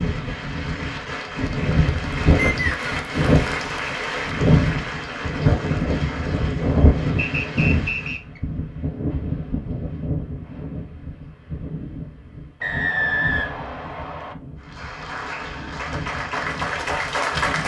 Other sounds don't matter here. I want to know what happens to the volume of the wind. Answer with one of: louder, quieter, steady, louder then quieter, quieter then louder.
quieter.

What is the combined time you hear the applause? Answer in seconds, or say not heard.
11 s.